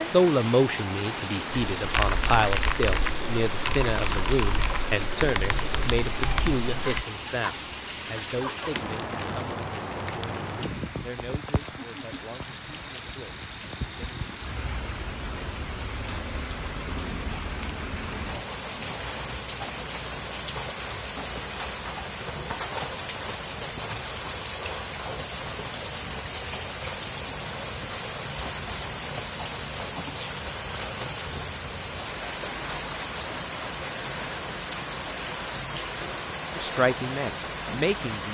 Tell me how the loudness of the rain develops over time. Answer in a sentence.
The volume of the rain stays about the same.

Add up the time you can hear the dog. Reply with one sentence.
You can't hear the dog here.